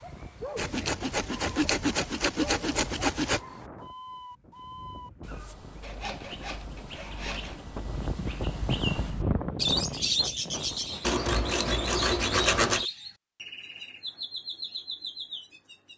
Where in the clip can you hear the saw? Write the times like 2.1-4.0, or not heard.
0.6-3.4, 5.8-7.6, 11.0-12.8.